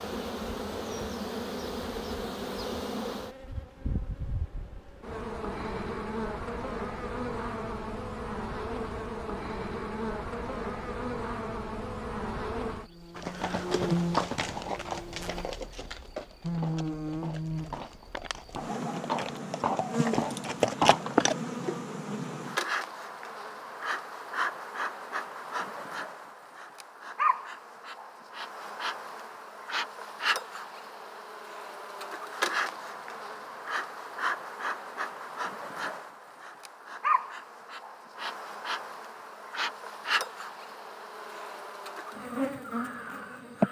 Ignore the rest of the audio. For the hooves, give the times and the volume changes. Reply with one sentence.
The hooves can be heard from 13.2 to 21.4 s, getting quieter then louder.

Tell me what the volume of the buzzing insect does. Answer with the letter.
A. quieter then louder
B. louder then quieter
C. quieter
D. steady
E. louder
D.